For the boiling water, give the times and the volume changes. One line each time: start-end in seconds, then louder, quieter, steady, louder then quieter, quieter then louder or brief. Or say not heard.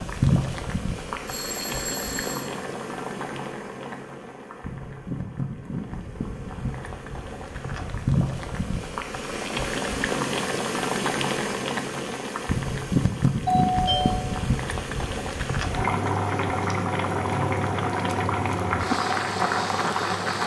0.0-20.4 louder.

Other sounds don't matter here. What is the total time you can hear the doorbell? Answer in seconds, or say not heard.
2 s.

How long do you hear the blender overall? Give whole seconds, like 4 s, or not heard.
not heard.